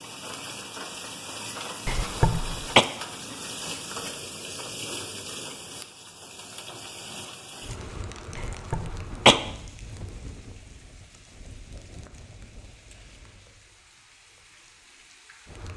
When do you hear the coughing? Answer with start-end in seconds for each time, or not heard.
1.9-2.9, 8.3-9.3.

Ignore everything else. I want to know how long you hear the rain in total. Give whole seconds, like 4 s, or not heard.
16 s.